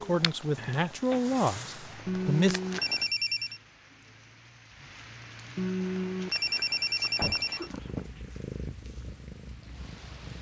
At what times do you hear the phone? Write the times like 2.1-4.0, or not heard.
2.0-3.6, 5.5-7.7.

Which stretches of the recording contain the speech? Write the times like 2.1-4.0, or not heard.
0.0-2.6.